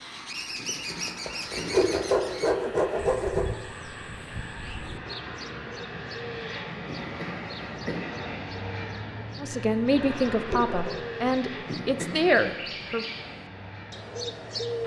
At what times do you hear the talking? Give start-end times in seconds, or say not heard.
9.4-13.1.